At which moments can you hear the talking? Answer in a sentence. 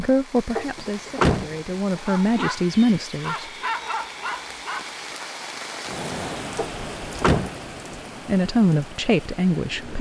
You can hear the talking from 0.0 to 3.5 s and from 8.2 to 9.9 s.